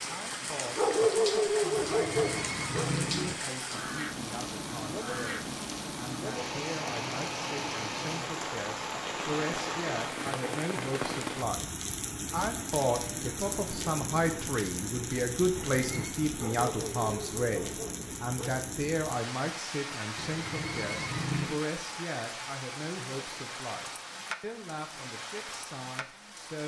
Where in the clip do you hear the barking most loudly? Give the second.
1 s.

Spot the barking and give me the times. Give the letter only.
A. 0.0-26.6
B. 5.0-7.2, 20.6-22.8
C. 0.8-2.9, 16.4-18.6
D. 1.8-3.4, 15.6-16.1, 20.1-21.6
C.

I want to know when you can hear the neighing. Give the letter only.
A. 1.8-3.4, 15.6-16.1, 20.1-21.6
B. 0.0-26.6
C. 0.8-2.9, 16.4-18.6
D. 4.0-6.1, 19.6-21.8
A.